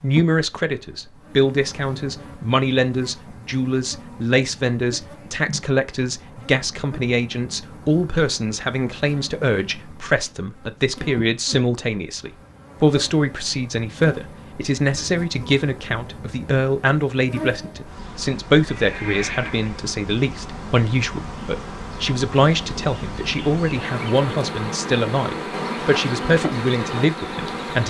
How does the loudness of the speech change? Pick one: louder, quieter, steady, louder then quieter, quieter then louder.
steady.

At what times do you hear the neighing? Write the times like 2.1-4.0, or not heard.
18.7-19.8.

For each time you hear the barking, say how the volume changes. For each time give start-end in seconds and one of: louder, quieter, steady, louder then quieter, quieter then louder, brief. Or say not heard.
not heard.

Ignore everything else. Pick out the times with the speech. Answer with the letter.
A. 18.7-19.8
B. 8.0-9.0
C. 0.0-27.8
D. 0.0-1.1
C.